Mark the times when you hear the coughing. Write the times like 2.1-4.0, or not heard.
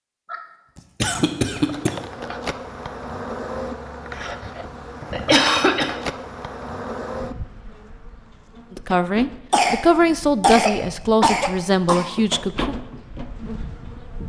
0.3-1.9, 5.1-6.0, 9.5-12.1.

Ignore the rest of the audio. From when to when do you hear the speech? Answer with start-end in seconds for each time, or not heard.
8.7-12.8.